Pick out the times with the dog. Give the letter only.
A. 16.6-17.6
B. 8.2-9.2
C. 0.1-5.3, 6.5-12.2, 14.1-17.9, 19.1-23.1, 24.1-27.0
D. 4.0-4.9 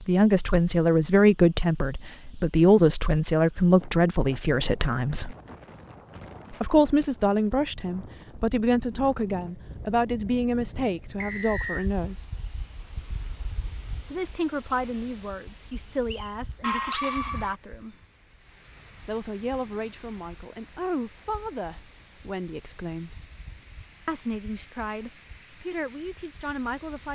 A.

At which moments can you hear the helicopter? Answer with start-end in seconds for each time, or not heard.
not heard.